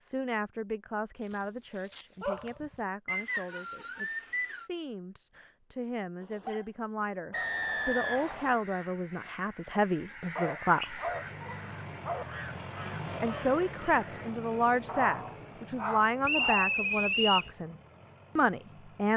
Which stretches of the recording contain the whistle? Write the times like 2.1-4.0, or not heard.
3.0-4.7, 7.3-8.6, 16.2-17.5.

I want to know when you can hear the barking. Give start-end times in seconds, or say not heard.
1.2-2.8, 6.2-7.5, 10.3-12.2, 14.8-16.7.